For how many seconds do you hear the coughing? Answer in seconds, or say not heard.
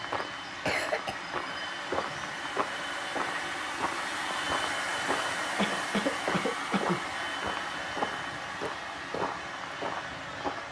2 s.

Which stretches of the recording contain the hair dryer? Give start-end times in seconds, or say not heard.
0.0-10.6.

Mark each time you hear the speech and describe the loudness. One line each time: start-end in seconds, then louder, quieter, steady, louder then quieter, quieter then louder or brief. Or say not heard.
not heard.